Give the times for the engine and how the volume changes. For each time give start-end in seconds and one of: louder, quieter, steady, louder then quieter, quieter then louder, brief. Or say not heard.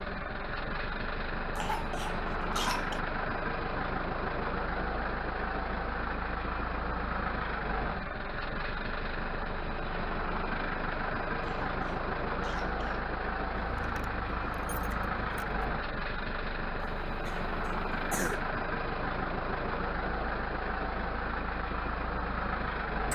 0.0-23.1 steady.